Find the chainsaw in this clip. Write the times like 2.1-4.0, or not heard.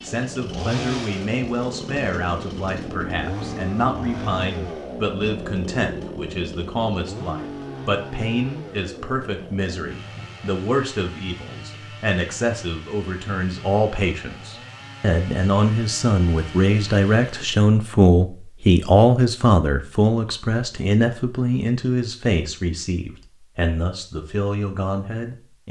0.0-17.6.